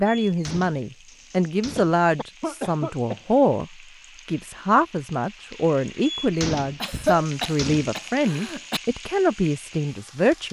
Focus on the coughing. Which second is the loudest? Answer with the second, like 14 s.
7 s.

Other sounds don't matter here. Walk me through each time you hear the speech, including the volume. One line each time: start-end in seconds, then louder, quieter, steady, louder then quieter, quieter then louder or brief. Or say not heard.
0.0-10.4 steady.